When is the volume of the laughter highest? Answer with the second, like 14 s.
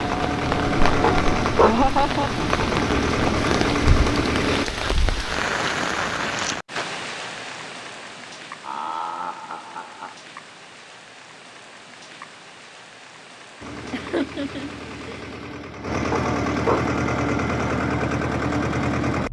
2 s.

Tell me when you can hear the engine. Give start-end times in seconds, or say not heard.
0.0-4.7, 13.6-19.2.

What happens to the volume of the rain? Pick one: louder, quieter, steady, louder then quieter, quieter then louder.
quieter.